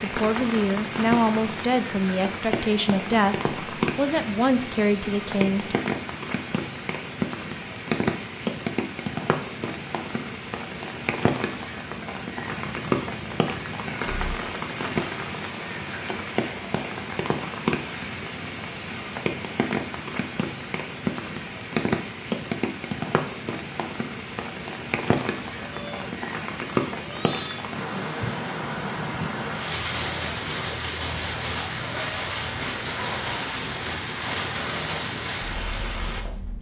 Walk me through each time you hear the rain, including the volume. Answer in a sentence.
The rain can be heard from 0.0 to 36.5 s, at a steady volume.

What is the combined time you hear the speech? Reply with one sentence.
You can hear the speech for 6 seconds altogether.